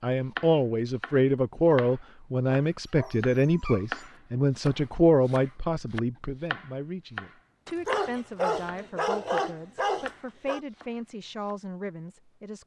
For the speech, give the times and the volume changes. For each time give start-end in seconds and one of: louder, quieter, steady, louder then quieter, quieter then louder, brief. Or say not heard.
0.0-12.6 quieter.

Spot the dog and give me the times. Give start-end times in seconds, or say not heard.
2.6-4.1, 7.7-10.6.